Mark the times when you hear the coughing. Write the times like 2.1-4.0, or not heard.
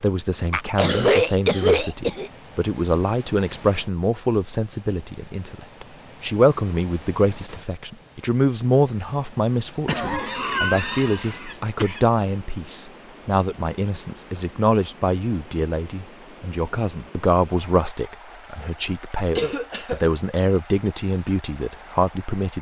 0.5-2.3, 9.8-12.0, 19.4-20.0.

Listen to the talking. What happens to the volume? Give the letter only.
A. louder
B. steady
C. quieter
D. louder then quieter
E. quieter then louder
B.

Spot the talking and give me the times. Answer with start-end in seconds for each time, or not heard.
0.0-22.5.